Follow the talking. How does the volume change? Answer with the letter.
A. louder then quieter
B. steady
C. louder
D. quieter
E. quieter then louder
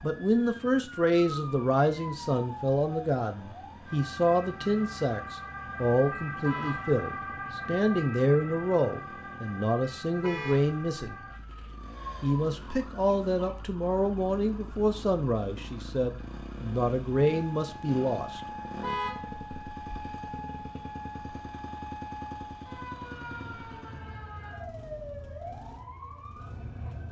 B.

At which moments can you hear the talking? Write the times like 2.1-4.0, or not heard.
0.0-11.2, 12.2-18.4.